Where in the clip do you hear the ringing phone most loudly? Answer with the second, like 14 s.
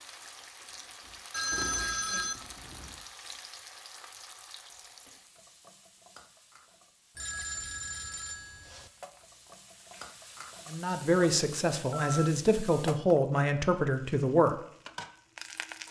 2 s.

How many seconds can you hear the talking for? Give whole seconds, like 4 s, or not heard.
4 s.